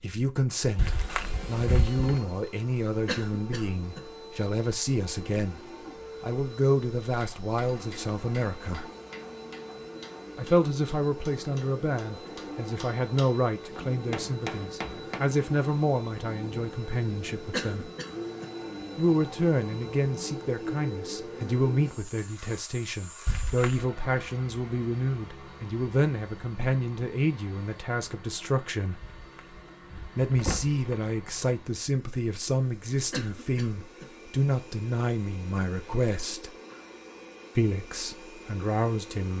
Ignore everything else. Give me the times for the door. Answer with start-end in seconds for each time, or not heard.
0.8-2.2, 23.2-23.9, 29.2-30.9.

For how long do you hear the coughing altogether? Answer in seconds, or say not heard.
3 s.